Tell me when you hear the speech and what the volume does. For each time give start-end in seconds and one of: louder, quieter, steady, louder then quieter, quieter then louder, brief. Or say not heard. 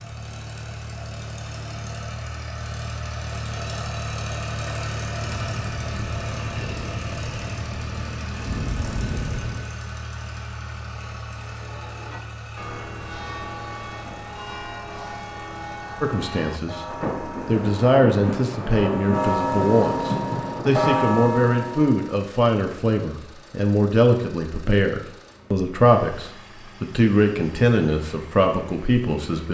16.0-29.4 steady.